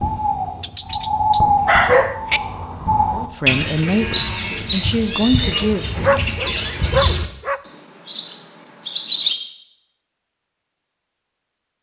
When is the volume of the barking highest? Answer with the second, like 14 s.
2 s.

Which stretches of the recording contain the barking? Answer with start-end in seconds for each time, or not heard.
0.6-2.4, 6.0-7.6.